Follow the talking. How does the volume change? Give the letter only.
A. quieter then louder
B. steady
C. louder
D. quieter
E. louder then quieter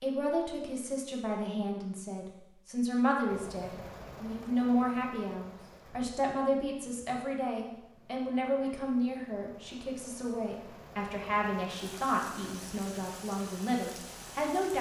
B.